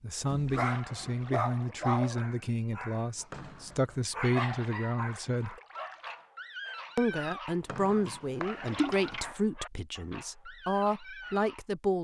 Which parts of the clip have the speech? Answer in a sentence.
The speech can be heard from 0.0 to 5.5 s and from 7.0 to 12.0 s.